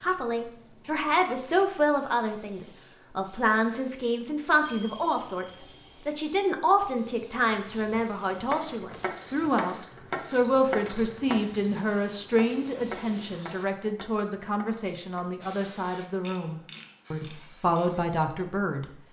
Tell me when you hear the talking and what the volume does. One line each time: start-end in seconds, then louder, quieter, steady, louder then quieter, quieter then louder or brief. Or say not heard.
0.0-18.9 steady.